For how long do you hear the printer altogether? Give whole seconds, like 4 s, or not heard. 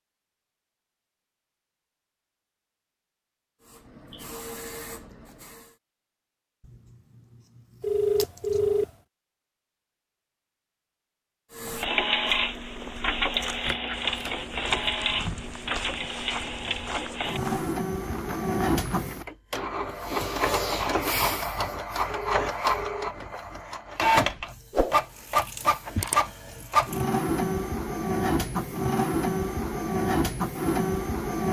22 s.